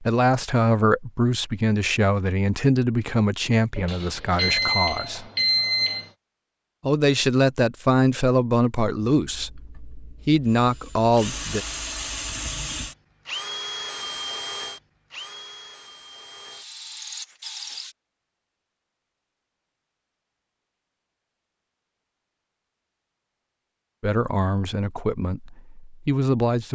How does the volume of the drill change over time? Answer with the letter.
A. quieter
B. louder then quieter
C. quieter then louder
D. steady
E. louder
B.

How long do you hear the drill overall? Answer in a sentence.
The drill can be heard for 9 seconds in total.